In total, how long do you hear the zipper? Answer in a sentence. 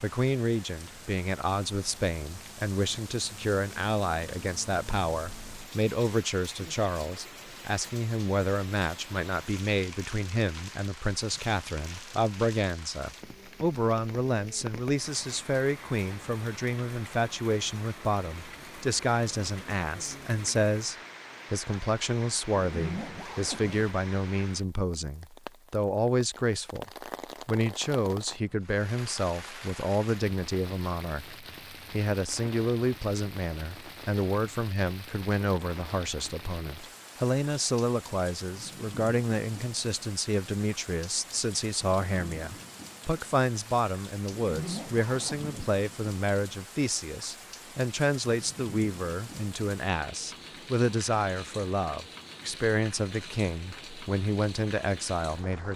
The zipper can be heard for 3 seconds in total.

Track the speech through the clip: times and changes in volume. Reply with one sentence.
The speech can be heard from 0.0 to 55.7 s, at a steady volume.